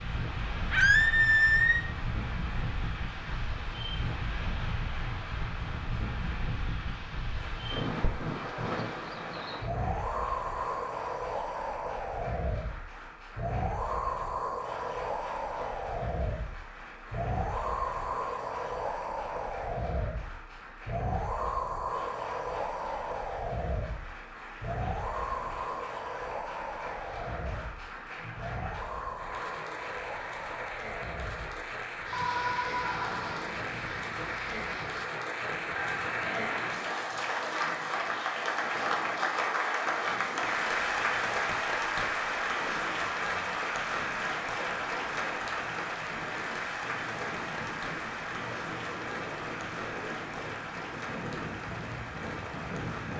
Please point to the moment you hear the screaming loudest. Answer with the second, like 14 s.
1 s.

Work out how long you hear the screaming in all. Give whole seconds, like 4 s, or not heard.
4 s.